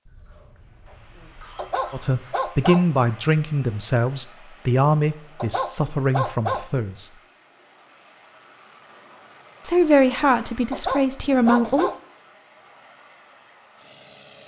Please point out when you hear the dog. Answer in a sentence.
The dog can be heard from 1.6 to 2.9 s, from 5.3 to 6.7 s and from 10.7 to 11.9 s.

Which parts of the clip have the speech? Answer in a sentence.
The speech can be heard from 1.9 to 7.1 s and from 9.6 to 11.9 s.